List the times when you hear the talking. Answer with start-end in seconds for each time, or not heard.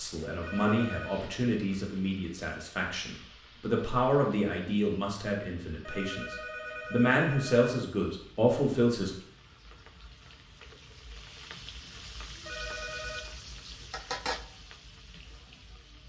0.0-9.1.